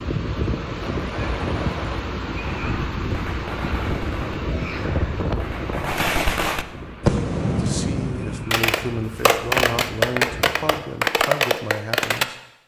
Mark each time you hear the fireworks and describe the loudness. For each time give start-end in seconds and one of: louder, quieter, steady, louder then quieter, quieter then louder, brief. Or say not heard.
0.8-12.2 louder.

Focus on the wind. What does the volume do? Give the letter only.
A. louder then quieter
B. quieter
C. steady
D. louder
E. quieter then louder
B.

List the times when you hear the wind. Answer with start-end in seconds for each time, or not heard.
0.0-10.8.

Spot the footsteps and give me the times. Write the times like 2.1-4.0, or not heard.
not heard.